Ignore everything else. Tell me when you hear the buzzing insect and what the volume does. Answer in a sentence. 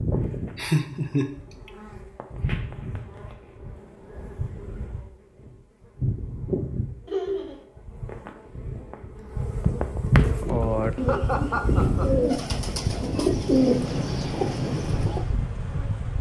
The buzzing insect can be heard from 0.0 to 16.1 s, getting louder then quieter.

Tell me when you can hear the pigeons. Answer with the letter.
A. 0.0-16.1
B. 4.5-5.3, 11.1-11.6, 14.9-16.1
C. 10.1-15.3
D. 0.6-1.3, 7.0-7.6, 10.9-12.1
C.